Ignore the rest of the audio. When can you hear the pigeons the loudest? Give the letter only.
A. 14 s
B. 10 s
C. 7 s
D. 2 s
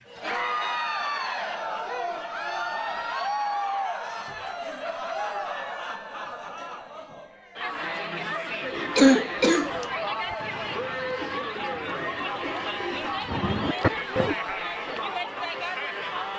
A.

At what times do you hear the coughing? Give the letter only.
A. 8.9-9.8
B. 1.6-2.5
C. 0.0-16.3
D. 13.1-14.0
A.